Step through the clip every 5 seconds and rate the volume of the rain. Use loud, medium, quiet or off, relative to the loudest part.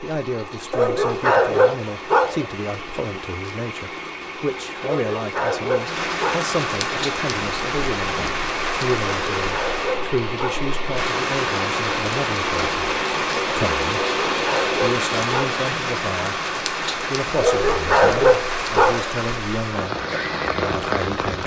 quiet, loud, loud, loud, loud.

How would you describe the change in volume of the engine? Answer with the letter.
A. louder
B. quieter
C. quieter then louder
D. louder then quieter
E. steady
A.